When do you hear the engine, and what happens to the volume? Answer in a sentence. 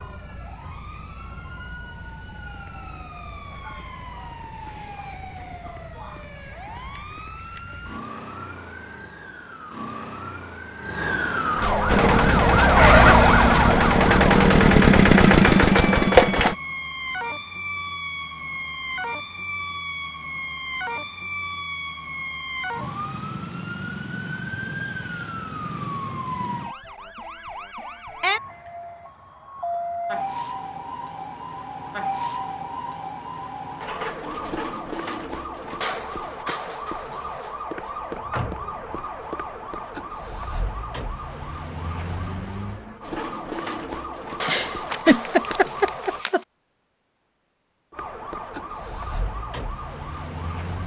The engine can be heard from 11.8 to 16.6 s, getting louder.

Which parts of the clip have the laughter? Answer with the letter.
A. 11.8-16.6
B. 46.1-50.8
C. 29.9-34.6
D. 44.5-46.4
D.